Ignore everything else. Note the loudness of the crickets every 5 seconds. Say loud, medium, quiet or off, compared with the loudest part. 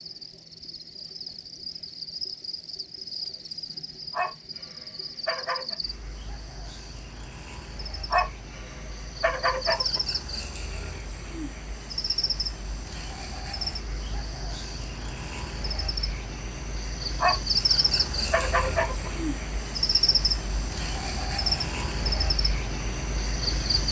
medium, medium, medium, loud, loud.